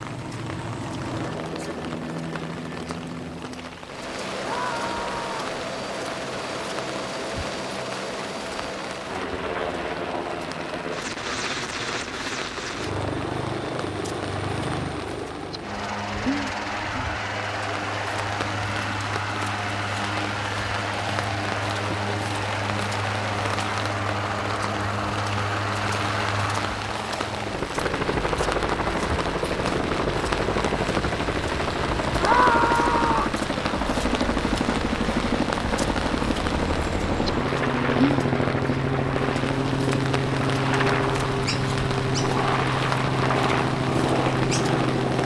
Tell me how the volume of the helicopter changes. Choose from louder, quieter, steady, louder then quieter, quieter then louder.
louder.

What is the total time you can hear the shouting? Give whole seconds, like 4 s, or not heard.
2 s.